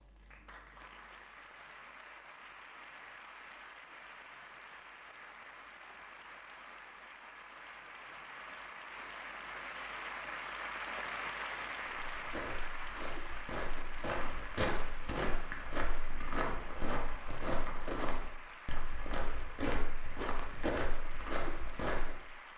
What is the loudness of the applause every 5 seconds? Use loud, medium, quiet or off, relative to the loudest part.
medium, medium, loud, medium, medium.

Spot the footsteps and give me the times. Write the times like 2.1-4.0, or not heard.
11.8-22.2.